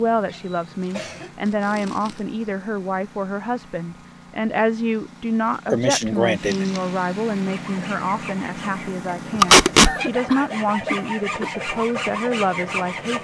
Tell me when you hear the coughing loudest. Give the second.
6 s.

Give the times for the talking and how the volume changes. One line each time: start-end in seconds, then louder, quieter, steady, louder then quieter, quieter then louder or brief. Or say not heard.
0.0-13.1 steady.